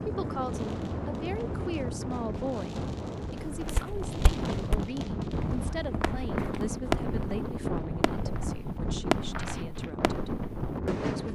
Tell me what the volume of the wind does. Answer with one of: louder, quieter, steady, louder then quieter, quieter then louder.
steady.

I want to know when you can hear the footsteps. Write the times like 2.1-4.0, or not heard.
3.5-9.9.